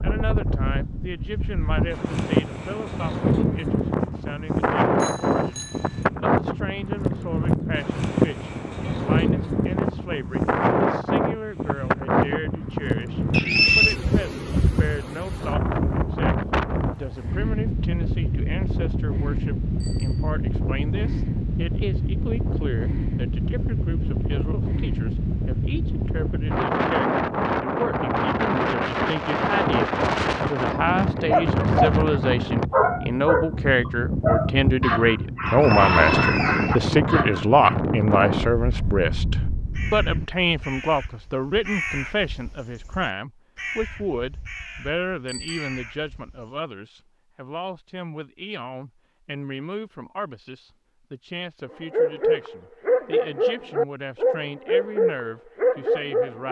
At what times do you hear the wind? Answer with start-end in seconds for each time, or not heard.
0.0-40.2.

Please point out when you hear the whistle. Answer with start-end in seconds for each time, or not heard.
13.3-13.9, 35.5-36.9.